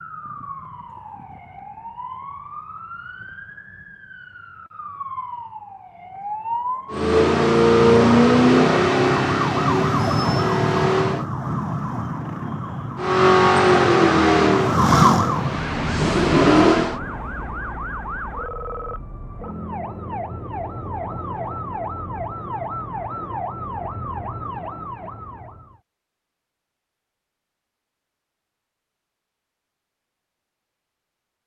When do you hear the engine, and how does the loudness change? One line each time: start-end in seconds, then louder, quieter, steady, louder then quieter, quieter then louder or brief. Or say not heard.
6.9-11.2 quieter
12.9-17.0 quieter then louder.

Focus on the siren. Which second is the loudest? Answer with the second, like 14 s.
15 s.